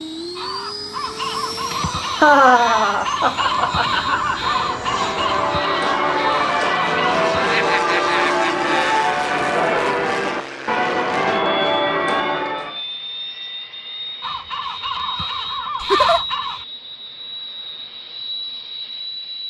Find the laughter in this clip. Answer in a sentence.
You can hear the laughter from 2.2 to 4.5 s, from 7.5 to 9.1 s and from 15.8 to 16.2 s.